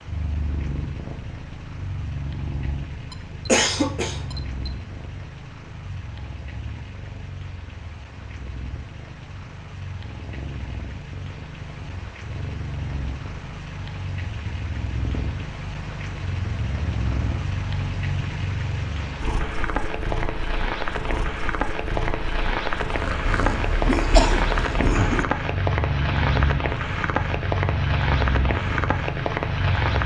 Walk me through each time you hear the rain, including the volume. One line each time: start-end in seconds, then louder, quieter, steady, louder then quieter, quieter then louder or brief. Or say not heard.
0.0-30.0 louder.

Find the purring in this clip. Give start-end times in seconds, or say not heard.
0.0-30.0.